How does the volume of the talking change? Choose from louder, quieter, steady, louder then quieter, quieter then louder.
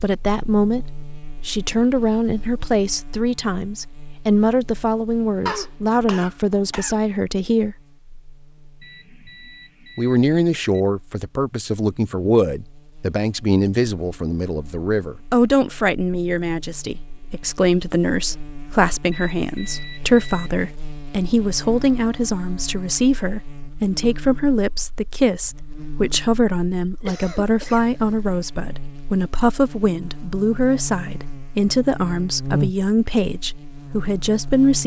steady.